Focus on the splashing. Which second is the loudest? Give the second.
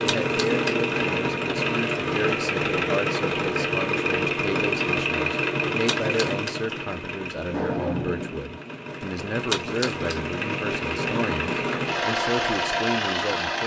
10 s.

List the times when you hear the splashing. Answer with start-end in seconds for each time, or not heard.
0.1-0.8, 5.8-6.5, 9.5-10.2.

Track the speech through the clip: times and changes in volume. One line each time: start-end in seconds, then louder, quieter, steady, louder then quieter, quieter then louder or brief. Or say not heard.
0.0-13.6 steady.